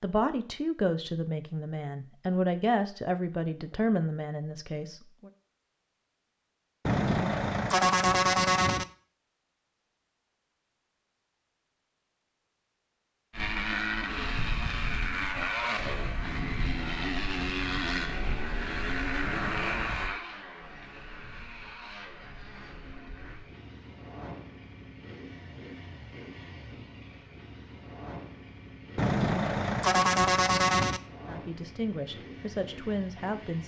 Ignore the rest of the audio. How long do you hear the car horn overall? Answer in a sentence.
You can hear the car horn for 5 seconds altogether.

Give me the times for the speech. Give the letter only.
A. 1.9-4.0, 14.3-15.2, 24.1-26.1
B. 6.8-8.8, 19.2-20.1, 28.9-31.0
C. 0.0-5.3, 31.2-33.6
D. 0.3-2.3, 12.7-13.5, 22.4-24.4
C.